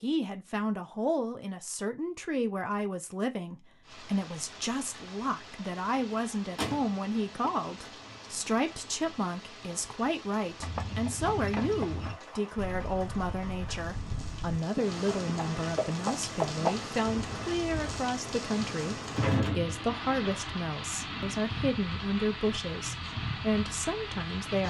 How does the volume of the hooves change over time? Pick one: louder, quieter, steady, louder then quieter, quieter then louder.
quieter then louder.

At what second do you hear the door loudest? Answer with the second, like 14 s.
19 s.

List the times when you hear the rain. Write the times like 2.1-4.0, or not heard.
3.8-24.6.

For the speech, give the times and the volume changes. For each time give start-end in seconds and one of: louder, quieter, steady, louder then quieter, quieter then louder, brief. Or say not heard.
0.0-24.6 steady.